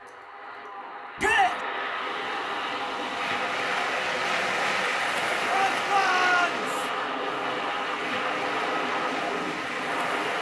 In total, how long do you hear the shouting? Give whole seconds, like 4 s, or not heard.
2 s.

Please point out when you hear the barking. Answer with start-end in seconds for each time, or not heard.
not heard.